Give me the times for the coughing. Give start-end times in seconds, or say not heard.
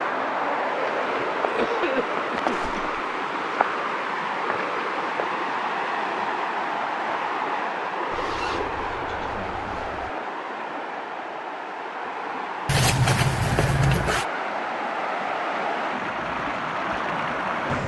1.4-2.8.